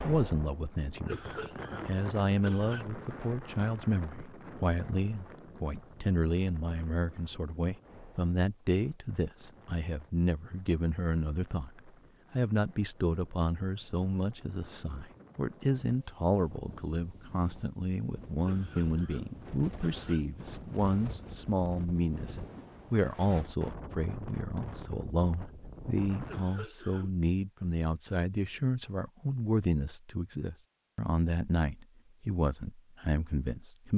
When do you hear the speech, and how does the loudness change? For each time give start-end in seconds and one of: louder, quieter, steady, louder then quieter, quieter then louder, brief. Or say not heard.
0.0-33.9 steady.